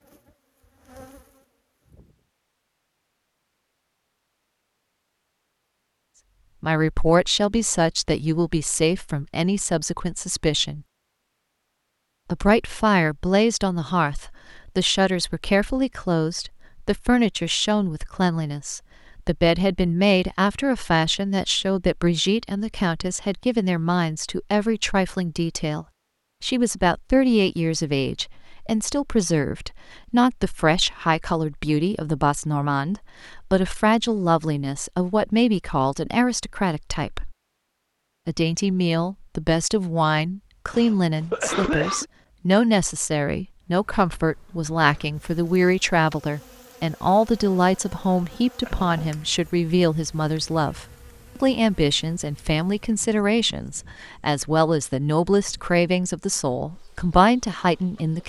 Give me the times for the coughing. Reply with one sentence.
The coughing can be heard from 40.7 to 42.0 s.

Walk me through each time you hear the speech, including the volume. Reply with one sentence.
The speech can be heard from 6.6 to 10.8 s, getting quieter; from 12.2 to 37.4 s, at a steady volume; and from 38.2 to 58.2 s, at a steady volume.